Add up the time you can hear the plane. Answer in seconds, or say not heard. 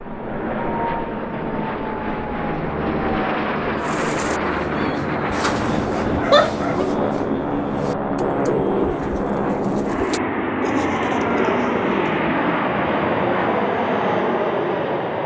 15 s.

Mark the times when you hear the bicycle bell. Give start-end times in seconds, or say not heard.
not heard.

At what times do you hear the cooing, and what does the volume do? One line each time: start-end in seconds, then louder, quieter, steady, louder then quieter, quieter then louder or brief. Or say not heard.
3.8-12.2 steady.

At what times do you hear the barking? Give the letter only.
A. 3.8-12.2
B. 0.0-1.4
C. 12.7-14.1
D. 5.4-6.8
D.